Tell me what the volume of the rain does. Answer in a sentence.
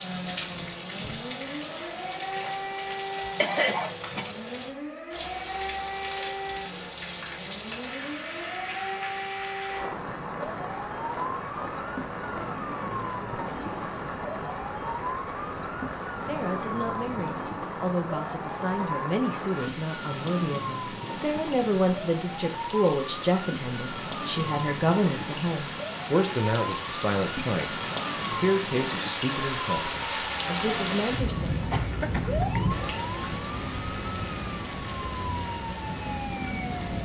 The loudness of the rain goes up.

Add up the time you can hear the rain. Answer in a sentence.
The rain can be heard for 37 seconds in total.